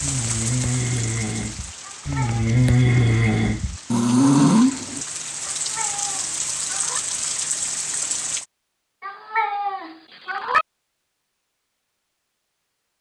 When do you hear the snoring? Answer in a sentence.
You can hear the snoring from 0.0 to 5.0 s.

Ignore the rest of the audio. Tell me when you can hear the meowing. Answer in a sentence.
The meowing can be heard from 1.8 to 2.5 s, from 5.6 to 7.0 s and from 9.0 to 10.7 s.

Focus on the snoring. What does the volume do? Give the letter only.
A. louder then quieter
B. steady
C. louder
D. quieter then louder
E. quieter
D.